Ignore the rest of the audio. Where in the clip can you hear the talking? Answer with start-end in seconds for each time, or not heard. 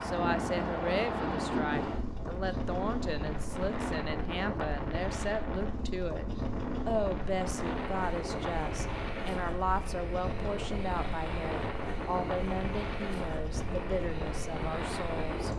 0.0-6.2, 6.8-15.5.